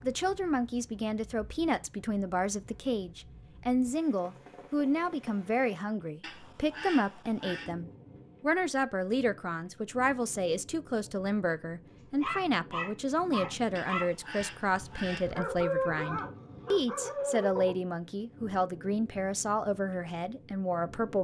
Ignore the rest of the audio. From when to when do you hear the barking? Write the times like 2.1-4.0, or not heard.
12.2-17.8.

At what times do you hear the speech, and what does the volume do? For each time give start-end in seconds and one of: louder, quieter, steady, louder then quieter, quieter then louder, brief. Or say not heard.
0.0-21.1 steady.